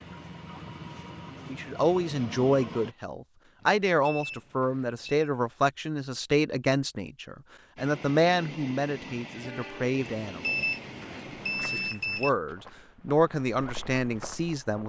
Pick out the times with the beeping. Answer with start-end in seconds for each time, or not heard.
3.6-5.3, 10.2-12.3.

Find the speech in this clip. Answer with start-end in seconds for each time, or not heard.
1.4-10.7, 11.6-14.8.